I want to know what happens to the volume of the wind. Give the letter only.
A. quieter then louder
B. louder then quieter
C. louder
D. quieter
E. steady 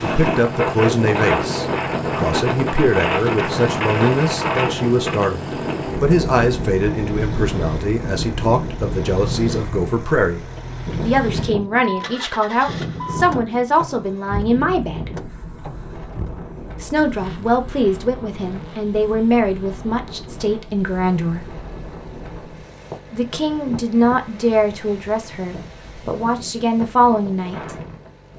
D.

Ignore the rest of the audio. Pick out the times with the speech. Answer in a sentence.
You can hear the speech from 0.0 to 15.1 s, from 16.8 to 21.4 s and from 23.1 to 27.8 s.